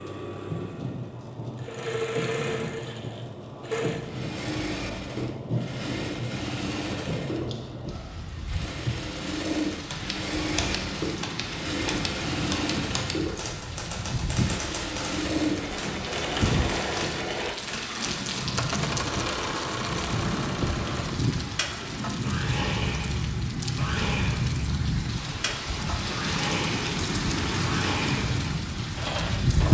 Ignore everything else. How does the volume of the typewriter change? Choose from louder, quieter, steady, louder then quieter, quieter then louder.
steady.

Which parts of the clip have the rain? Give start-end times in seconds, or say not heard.
0.0-29.6.